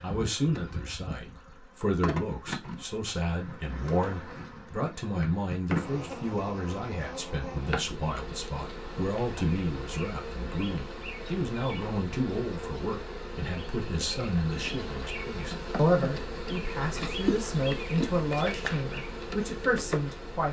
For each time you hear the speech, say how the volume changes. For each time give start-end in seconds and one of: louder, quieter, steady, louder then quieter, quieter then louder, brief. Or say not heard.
0.0-20.4 steady.